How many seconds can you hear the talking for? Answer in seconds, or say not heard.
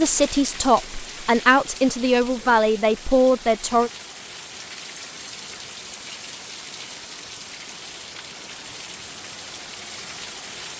4 s.